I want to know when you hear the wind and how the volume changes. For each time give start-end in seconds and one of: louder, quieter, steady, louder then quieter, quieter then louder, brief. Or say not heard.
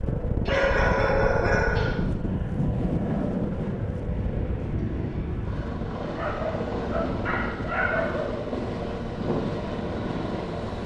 0.0-10.8 quieter.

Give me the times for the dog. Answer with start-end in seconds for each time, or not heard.
0.5-2.0, 6.0-8.3.